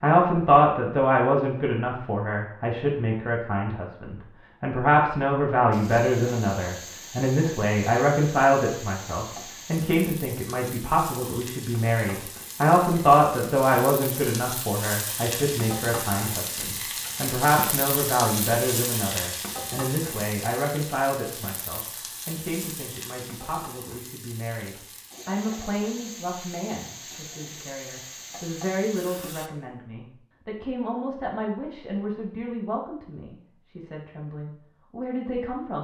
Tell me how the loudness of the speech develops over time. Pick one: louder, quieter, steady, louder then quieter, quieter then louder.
quieter.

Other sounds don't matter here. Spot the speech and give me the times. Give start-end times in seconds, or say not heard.
0.0-35.8.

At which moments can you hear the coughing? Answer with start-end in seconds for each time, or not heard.
not heard.